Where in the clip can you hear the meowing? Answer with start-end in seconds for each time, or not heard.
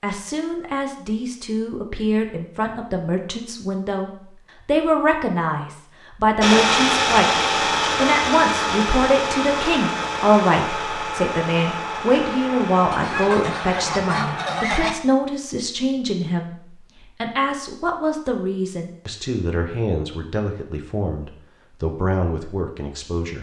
not heard.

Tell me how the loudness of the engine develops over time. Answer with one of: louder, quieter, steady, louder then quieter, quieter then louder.
quieter.